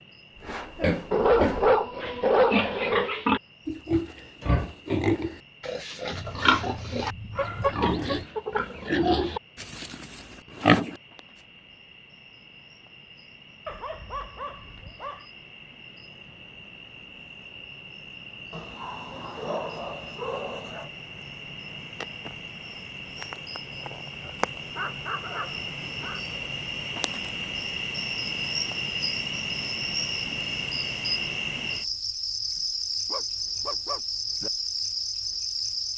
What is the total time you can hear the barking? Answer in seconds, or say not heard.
12 s.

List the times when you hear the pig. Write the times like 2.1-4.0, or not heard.
0.4-11.0.